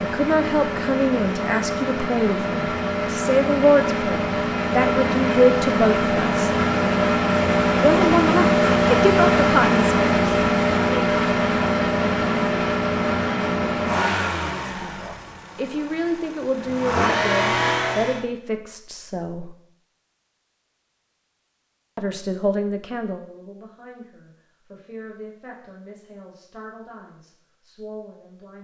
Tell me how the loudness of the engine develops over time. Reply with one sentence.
The loudness of the engine goes up, then down.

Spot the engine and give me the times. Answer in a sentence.
You can hear the engine from 0.0 to 18.2 s.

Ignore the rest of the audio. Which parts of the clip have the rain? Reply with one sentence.
You can't hear the rain here.